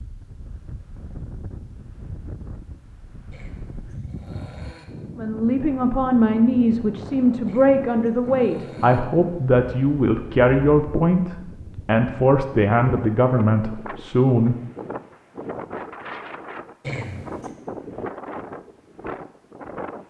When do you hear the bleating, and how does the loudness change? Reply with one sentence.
The bleating can't be heard in this clip.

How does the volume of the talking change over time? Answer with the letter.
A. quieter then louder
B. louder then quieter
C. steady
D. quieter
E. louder
C.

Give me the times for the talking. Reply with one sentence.
You can hear the talking from 5.2 to 14.6 s.